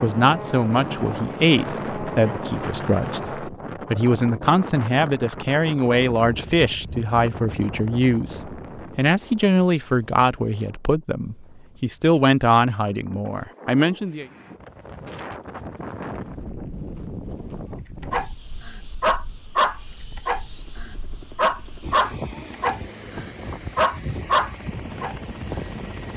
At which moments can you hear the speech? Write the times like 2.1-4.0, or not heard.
0.0-14.2.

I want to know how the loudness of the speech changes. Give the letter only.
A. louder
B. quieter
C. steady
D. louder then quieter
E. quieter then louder
C.